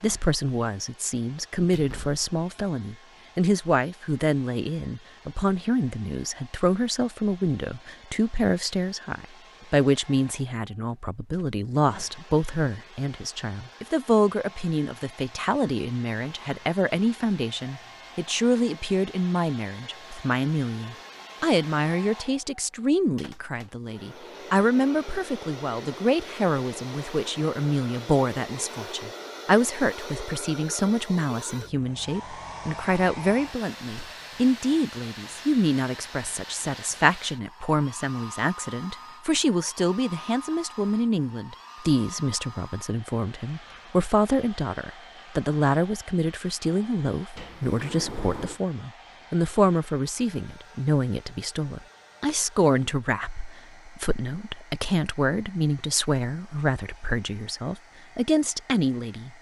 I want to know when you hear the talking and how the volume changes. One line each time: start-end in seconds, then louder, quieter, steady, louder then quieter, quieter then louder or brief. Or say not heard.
0.0-59.3 steady.